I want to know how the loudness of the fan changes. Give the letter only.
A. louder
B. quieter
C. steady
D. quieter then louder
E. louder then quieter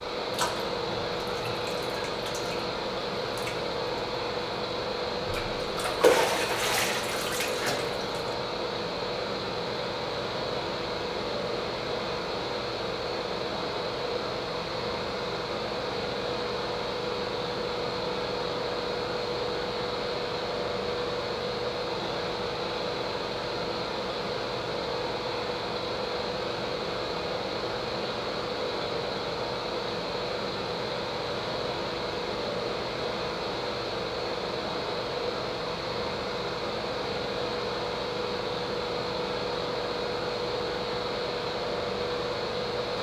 C.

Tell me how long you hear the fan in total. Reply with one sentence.
You can hear the fan for 43 seconds altogether.